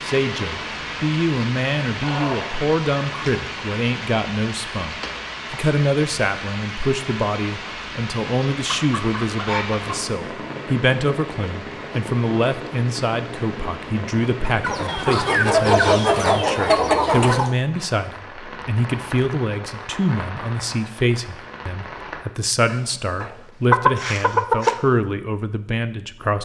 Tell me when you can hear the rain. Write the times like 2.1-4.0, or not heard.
0.0-22.2.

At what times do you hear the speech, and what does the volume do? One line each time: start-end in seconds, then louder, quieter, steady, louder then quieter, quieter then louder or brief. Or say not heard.
0.0-26.4 steady.